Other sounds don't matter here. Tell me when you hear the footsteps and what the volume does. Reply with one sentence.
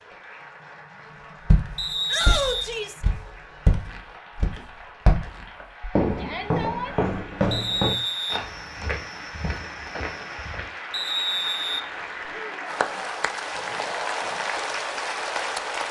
You can hear the footsteps from 1.4 to 10.7 s, getting louder then quieter.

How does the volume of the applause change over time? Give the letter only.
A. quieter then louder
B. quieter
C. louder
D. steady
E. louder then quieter
C.